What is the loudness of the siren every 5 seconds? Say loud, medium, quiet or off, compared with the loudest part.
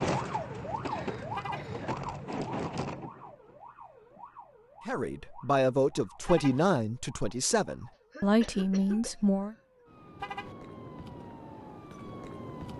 loud, quiet, medium.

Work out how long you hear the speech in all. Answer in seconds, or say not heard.
5 s.